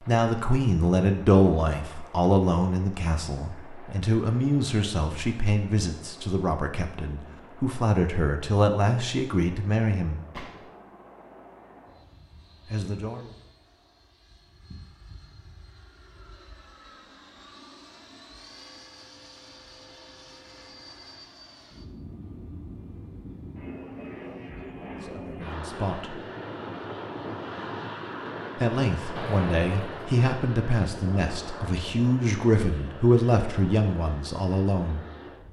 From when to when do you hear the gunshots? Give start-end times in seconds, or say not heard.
10.3-10.8, 29.1-30.2.